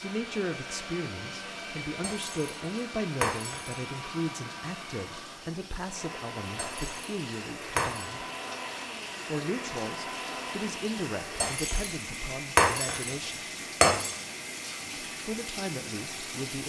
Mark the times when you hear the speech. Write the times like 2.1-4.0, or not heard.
0.0-8.2, 9.2-13.4, 15.2-16.6.